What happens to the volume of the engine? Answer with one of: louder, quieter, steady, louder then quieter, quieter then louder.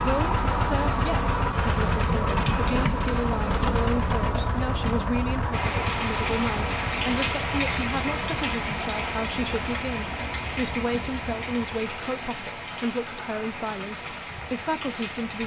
quieter.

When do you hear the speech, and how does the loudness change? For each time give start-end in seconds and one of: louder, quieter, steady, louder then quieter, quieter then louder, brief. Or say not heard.
0.0-15.4 steady.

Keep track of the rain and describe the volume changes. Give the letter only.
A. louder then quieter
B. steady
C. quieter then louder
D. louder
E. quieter
E.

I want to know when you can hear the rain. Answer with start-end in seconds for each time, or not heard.
5.5-15.4.